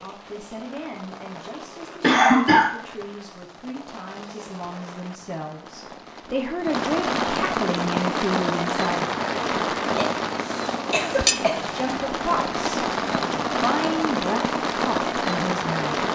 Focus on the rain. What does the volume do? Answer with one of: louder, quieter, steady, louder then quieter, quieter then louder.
louder.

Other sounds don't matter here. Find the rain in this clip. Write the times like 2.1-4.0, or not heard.
0.0-16.1.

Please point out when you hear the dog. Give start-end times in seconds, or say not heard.
not heard.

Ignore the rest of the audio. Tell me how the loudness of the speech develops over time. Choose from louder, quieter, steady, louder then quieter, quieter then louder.
louder.